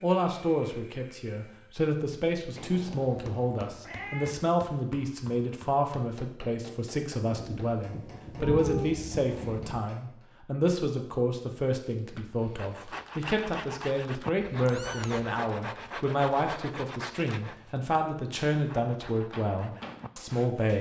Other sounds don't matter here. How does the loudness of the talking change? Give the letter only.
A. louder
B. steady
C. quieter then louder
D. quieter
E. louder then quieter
B.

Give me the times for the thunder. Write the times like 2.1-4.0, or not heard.
7.3-9.9.